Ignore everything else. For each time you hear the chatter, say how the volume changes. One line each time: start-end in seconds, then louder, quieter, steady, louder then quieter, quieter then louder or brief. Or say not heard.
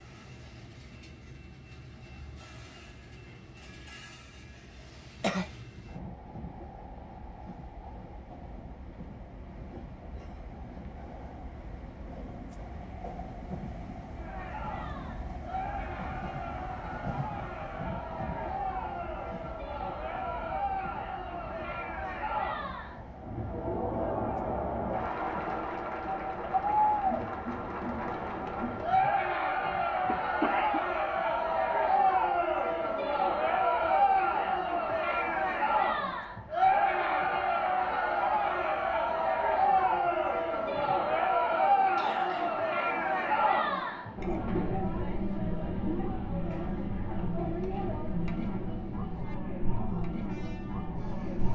14.2-51.4 louder then quieter.